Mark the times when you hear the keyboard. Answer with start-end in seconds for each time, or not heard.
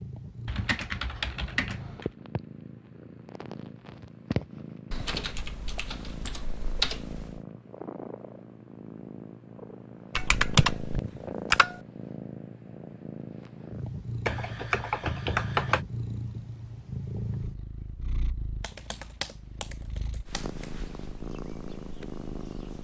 0.5-2.1, 4.9-7.4, 10.2-11.8, 14.2-15.8, 18.6-20.7.